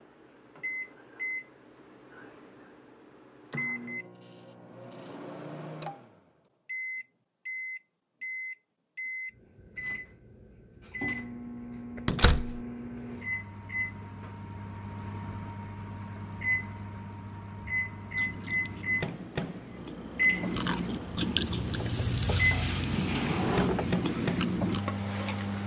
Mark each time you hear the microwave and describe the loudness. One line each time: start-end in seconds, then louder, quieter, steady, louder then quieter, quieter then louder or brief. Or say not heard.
0.0-25.6 louder.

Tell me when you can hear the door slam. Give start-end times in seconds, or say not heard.
12.1-12.6.